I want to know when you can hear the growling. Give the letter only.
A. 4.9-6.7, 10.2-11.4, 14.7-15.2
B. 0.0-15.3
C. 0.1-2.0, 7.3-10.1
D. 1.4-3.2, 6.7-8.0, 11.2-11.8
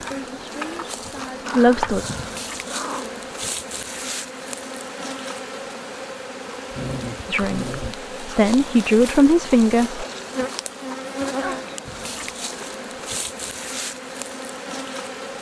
D.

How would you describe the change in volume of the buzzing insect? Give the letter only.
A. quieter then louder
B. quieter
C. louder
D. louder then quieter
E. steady
E.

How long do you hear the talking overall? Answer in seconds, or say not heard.
5 s.